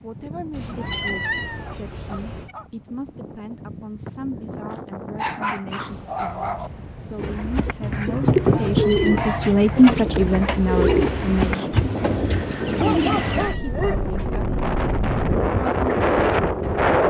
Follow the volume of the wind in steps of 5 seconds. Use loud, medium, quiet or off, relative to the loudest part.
quiet, quiet, medium, loud.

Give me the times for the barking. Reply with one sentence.
You can hear the barking from 0.7 to 2.7 s, from 4.7 to 6.7 s, from 10.1 to 11.1 s and from 12.8 to 14.2 s.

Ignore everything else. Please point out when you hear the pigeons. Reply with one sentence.
The pigeons can be heard from 7.2 to 13.5 s.